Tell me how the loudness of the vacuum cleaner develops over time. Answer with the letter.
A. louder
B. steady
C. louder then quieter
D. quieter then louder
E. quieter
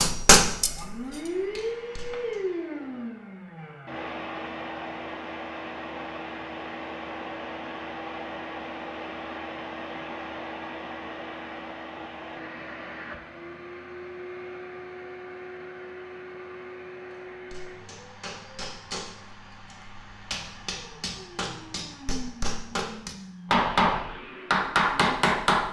E.